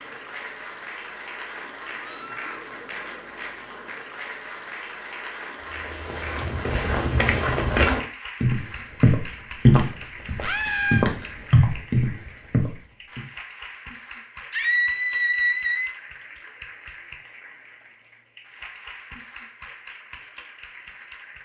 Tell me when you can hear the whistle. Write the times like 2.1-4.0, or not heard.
not heard.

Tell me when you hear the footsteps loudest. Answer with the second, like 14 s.
10 s.